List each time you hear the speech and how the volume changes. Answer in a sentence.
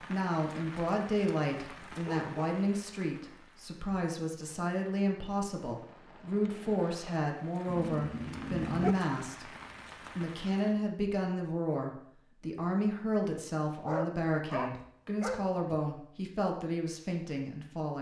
You can hear the speech from 0.0 to 17.9 s, at a steady volume.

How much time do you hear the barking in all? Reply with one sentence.
The barking can be heard for 4 seconds in total.